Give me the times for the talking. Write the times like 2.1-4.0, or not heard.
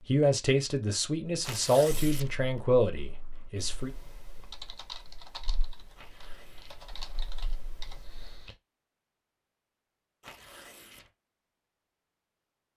0.1-3.9.